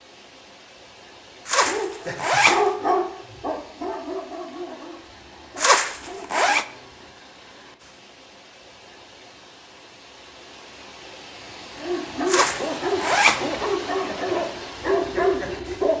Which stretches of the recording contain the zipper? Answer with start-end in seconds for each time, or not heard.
1.4-2.6, 5.5-6.7, 12.2-13.4.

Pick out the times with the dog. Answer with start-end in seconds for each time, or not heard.
1.6-7.1, 11.8-15.9.